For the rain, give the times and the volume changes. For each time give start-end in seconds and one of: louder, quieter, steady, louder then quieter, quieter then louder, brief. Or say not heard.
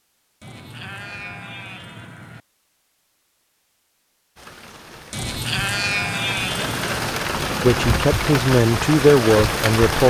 4.3-10.0 louder.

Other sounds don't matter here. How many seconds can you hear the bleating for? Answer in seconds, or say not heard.
4 s.